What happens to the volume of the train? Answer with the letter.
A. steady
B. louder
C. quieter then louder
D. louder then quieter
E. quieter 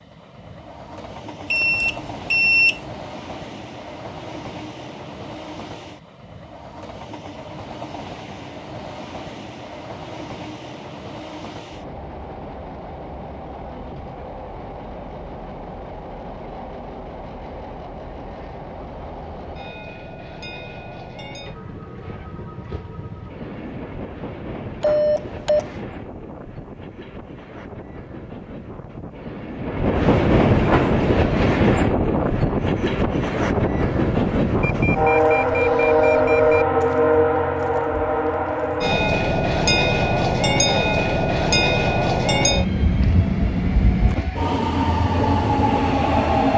B.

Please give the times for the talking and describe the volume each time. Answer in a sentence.
The talking can't be heard in this clip.